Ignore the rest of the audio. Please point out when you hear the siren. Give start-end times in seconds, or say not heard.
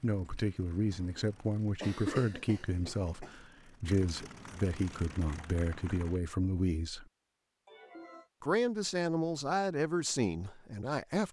not heard.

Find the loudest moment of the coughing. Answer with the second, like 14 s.
2 s.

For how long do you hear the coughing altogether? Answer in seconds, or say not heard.
3 s.